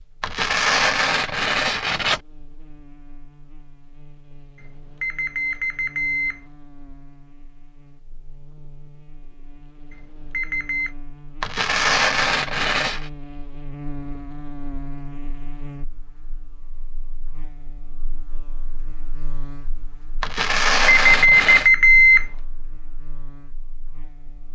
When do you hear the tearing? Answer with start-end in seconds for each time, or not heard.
0.2-2.2, 11.4-13.1, 20.2-21.7.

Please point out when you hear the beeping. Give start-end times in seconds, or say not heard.
5.0-6.4, 9.9-10.9, 20.4-22.2.